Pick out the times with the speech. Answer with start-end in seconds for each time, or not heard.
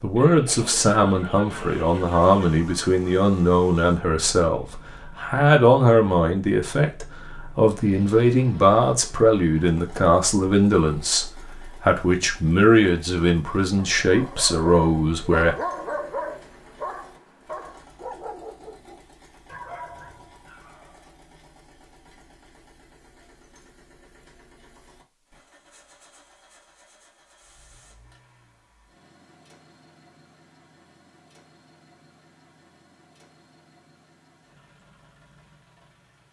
0.0-15.6.